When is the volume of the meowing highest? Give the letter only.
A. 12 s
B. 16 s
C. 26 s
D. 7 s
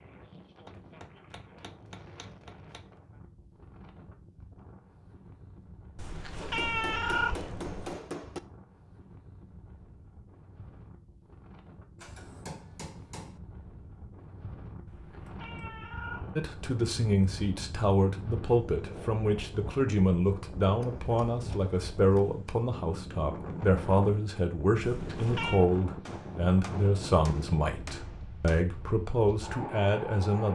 D.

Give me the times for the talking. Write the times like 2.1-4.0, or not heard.
16.4-30.4.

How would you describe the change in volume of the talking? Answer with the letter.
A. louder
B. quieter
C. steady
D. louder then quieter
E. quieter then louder
C.